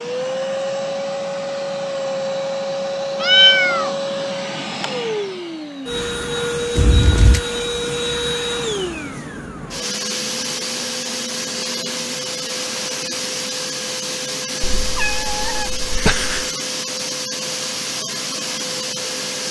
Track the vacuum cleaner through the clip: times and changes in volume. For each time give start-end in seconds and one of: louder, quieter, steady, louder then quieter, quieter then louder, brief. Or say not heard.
0.0-19.4 steady.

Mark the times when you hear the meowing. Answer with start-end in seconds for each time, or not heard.
3.2-4.0, 6.8-7.4, 14.6-16.5.